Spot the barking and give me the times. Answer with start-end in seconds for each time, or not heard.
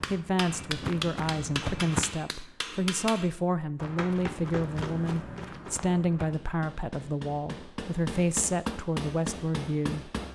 not heard.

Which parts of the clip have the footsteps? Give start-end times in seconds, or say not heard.
0.0-2.1, 3.8-6.3.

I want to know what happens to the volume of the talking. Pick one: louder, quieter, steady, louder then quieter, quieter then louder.
steady.